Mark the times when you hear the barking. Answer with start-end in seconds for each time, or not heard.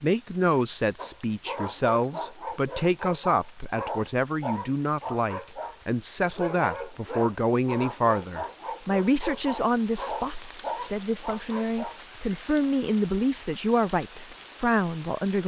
0.9-12.2.